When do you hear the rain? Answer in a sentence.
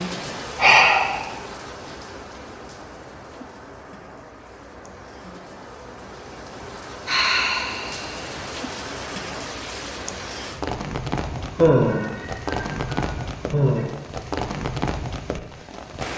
The rain can be heard from 0.0 to 16.1 s.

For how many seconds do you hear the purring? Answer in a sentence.
You can't hear the purring here.